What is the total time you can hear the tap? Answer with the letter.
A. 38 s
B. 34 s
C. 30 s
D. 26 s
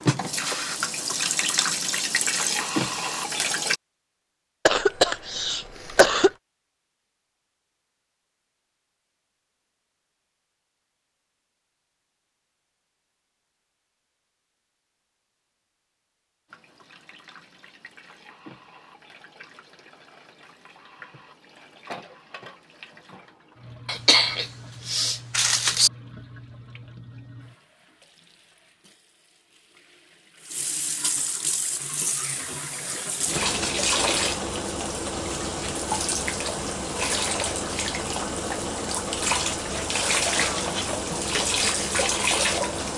C.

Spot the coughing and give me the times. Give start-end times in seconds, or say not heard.
4.7-6.3, 23.9-25.9, 40.4-41.3.